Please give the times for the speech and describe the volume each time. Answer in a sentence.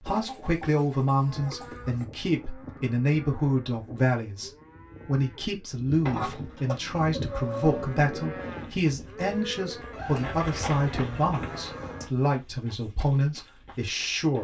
The speech can be heard from 0.0 to 14.3 s, at a steady volume.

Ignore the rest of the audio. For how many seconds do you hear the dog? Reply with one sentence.
You can't hear the dog here.